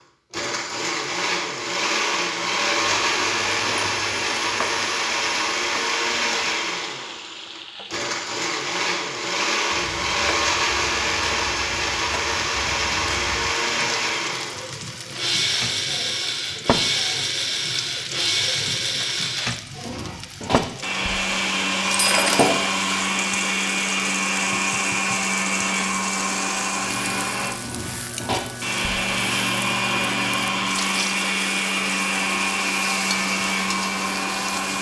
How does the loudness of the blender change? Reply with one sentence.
The loudness of the blender stays about the same.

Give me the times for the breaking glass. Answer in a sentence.
You can hear the breaking glass from 21.9 to 22.8 s.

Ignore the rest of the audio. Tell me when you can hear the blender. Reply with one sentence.
The blender can be heard from 0.3 to 34.7 s.